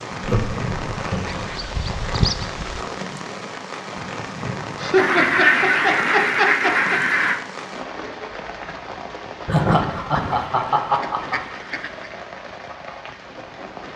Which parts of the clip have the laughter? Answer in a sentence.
The laughter can be heard from 0.2 to 1.5 s, from 4.8 to 7.0 s and from 9.4 to 11.4 s.